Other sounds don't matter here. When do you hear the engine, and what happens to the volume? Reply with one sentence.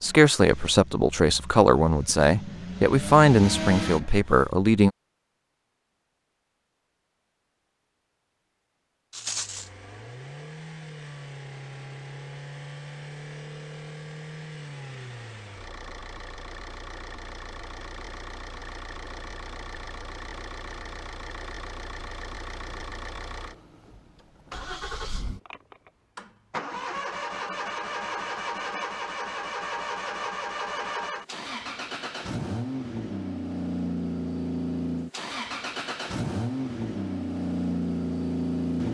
The engine can be heard from 0.0 to 4.5 s, getting louder; and from 9.2 to 38.8 s, getting louder.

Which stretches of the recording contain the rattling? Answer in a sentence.
You can hear the rattling from 9.1 to 9.7 s.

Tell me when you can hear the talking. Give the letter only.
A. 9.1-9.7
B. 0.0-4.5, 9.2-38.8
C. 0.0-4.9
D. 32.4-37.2
C.